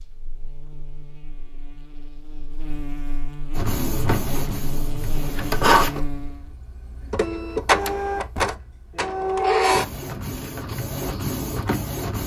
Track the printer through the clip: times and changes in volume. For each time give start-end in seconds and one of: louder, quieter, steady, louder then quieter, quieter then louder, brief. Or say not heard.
3.5-12.2 louder then quieter.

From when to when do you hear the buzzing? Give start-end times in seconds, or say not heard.
0.0-6.5.